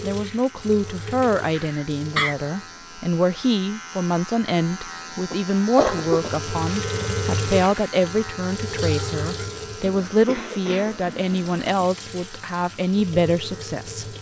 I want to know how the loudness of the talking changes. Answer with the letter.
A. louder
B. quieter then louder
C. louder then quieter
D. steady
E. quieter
D.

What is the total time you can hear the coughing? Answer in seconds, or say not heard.
4 s.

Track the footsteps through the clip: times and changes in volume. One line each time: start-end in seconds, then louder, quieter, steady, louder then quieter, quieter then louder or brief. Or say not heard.
not heard.